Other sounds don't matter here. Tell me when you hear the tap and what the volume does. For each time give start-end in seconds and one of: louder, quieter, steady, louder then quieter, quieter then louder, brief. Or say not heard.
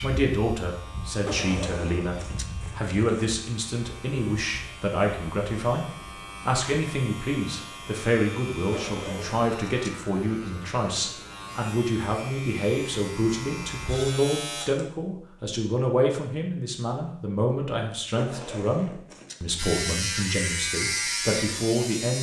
not heard.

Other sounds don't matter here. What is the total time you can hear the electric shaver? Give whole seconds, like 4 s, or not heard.
17 s.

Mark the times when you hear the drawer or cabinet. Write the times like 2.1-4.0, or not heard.
not heard.